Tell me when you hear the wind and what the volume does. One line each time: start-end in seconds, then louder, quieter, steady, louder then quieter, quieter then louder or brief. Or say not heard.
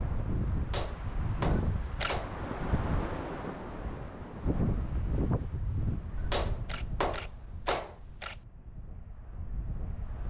0.0-10.2 quieter.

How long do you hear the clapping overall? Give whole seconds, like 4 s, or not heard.
3 s.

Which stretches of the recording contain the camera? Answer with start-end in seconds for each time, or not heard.
1.4-2.1, 6.2-8.4.